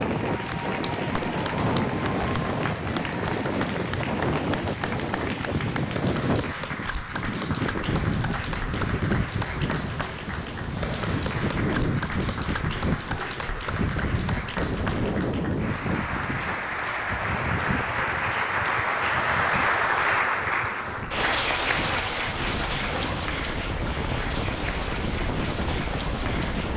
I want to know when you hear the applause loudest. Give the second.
20 s.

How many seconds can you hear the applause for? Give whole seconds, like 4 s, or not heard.
27 s.